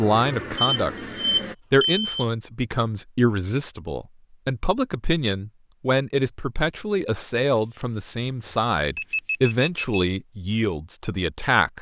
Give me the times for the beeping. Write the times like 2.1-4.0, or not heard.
0.6-2.2, 7.5-10.0.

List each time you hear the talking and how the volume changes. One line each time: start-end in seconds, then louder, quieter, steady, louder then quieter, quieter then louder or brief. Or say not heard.
0.0-0.9 brief
1.7-11.7 steady.